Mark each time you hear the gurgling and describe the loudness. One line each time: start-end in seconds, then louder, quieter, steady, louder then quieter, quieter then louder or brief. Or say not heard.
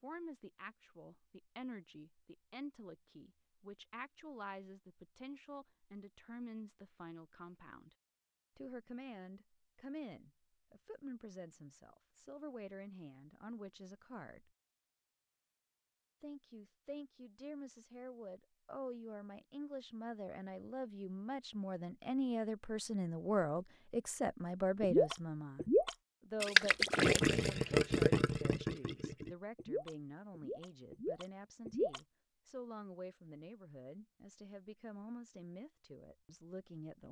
24.8-32.0 quieter.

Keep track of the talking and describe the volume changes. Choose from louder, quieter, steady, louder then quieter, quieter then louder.
louder then quieter.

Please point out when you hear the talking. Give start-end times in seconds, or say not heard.
0.0-8.0, 8.6-14.5, 16.2-37.0.